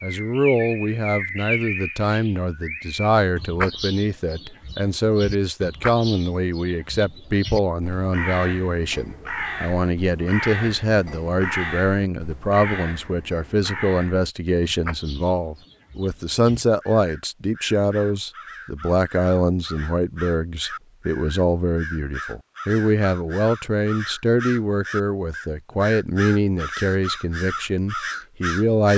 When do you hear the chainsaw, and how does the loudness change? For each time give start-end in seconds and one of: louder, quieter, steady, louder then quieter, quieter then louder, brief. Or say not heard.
not heard.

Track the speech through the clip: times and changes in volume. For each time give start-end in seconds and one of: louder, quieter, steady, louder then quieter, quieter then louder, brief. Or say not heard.
0.0-28.9 steady.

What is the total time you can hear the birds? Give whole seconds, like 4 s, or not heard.
29 s.